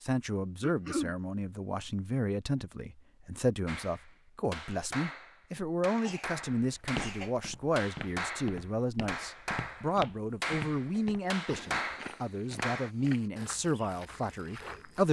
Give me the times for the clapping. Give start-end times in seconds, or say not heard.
3.6-12.9.